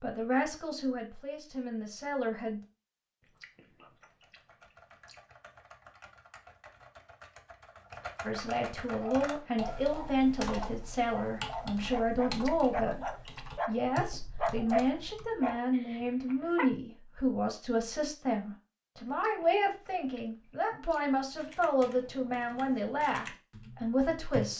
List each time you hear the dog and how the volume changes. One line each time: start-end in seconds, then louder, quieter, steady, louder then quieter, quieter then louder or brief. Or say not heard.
8.9-16.7 louder then quieter.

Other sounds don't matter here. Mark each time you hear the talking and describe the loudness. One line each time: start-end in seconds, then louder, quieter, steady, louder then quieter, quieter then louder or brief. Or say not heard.
0.0-2.6 brief
8.2-24.5 steady.